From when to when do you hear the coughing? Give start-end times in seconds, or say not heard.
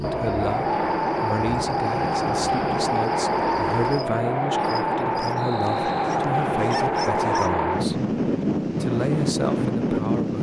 not heard.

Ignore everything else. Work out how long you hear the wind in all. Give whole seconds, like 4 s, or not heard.
10 s.